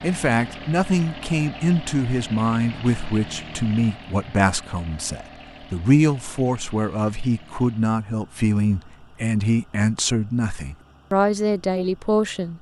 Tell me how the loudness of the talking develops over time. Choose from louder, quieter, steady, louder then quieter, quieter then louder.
steady.